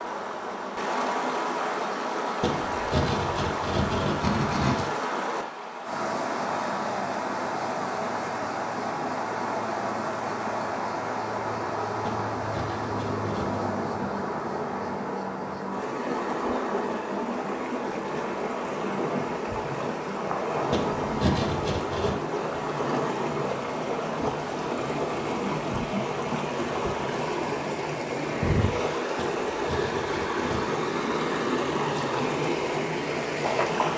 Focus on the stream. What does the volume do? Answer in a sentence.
The volume of the stream stays about the same.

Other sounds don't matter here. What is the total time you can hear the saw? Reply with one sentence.
You can hear the saw for 7 seconds altogether.